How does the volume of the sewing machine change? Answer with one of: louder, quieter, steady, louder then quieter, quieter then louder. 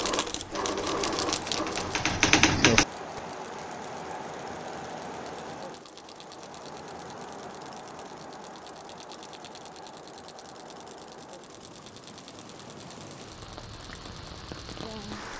quieter.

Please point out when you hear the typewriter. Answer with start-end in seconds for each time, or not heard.
0.2-3.2.